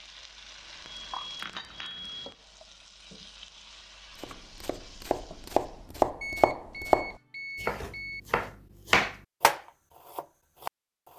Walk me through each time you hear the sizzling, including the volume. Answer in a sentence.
The sizzling can be heard from 0.0 to 5.9 s, getting quieter.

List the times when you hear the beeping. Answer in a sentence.
The beeping can be heard from 0.8 to 2.4 s and from 6.2 to 8.2 s.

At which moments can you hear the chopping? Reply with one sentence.
You can hear the chopping from 4.2 to 10.7 s.